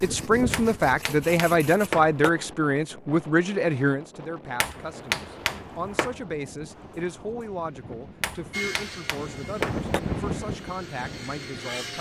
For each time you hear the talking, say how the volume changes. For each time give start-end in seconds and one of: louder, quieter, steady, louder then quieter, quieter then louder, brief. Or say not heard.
0.0-11.9 quieter.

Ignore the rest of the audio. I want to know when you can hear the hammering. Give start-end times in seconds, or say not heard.
0.5-2.3, 4.6-6.2, 8.2-10.0.